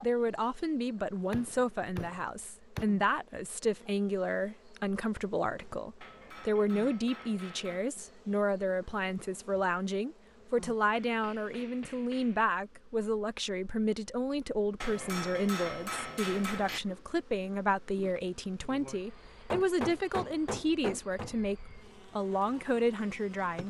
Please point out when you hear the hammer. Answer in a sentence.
The hammer can be heard from 1.3 to 2.9 s, from 6.0 to 7.8 s, from 10.9 to 12.4 s, from 14.8 to 16.8 s and from 19.5 to 21.4 s.